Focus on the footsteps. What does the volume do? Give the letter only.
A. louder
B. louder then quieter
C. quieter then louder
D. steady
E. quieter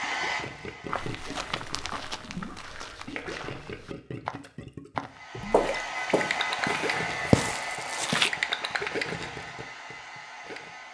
C.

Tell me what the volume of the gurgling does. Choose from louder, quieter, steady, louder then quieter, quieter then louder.
louder.